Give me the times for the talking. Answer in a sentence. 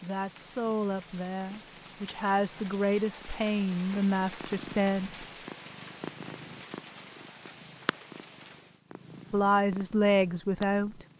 The talking can be heard from 0.0 to 5.2 s and from 9.3 to 11.1 s.